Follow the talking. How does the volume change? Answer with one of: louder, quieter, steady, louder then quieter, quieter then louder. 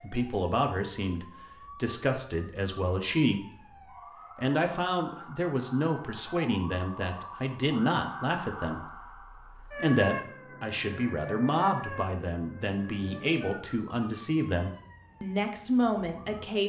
steady.